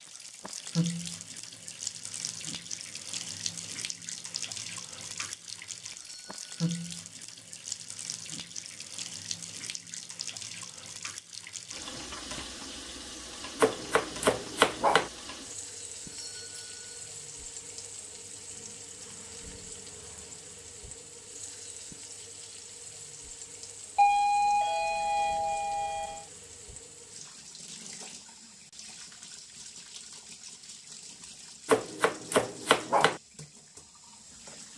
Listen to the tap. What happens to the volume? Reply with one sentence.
The loudness of the tap goes down.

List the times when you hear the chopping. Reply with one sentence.
The chopping can be heard from 13.6 to 15.1 s and from 31.6 to 33.2 s.